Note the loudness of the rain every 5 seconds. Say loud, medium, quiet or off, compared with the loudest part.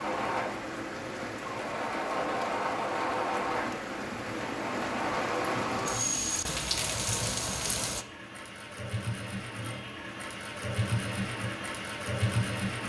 medium, loud, off.